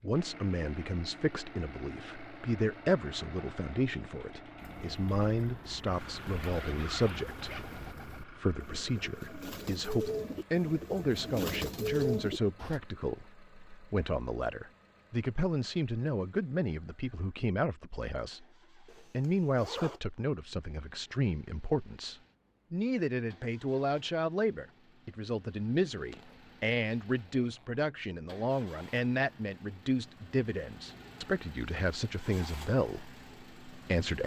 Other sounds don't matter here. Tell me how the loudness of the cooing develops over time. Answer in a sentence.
The loudness of the cooing goes up.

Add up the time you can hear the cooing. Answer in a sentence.
You can hear the cooing for 8 seconds altogether.